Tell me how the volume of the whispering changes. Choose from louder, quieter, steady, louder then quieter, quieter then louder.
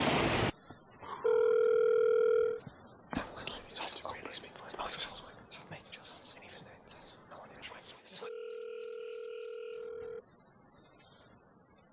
quieter.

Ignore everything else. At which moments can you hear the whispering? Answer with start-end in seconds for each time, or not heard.
3.1-8.3.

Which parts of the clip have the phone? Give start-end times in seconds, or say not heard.
1.2-2.6, 8.2-10.2.